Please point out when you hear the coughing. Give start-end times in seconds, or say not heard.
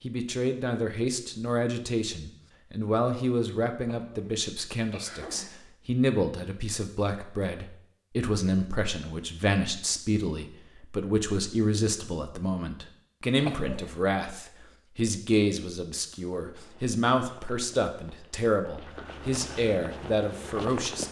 3.9-5.5, 13.3-13.9.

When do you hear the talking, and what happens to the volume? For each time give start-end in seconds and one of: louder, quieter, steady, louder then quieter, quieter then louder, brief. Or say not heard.
0.0-21.0 steady.